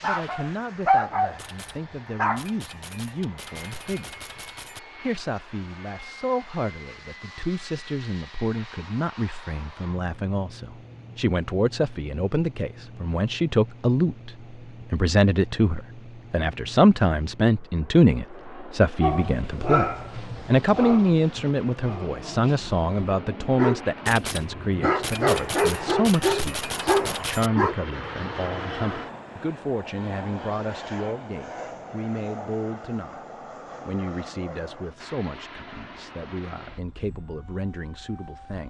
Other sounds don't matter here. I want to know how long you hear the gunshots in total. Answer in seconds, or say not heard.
7 s.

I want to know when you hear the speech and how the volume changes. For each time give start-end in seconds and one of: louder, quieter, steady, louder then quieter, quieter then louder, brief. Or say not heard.
0.0-33.2 louder then quieter
33.9-38.6 steady.